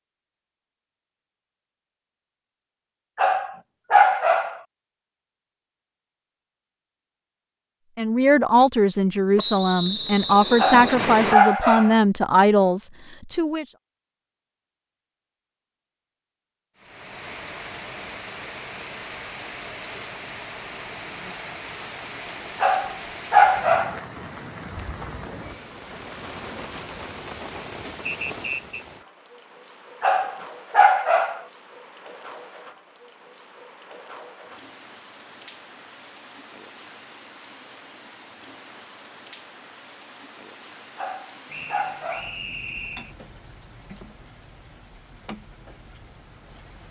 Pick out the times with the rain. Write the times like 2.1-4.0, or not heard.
16.8-46.8.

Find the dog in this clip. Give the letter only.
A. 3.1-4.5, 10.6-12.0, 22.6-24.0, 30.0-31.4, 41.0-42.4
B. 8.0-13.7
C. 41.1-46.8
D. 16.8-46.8
A.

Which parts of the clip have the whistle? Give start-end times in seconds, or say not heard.
9.3-11.3, 28.1-28.8, 41.5-43.1.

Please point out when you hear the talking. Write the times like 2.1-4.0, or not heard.
8.0-13.7.